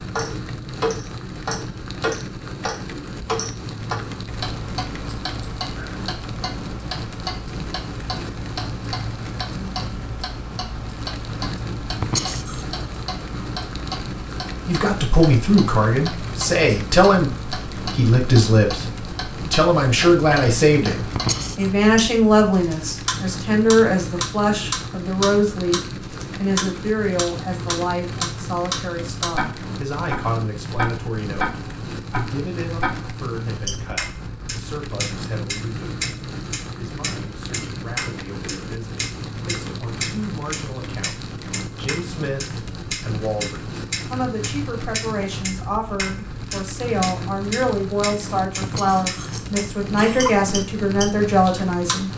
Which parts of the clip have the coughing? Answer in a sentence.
You can hear the coughing from 11.9 to 12.7 s, from 21.0 to 21.7 s and from 48.6 to 50.5 s.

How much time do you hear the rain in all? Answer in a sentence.
The rain can be heard for 52 seconds in total.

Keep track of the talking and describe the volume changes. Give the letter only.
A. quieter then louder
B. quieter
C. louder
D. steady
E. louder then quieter
A.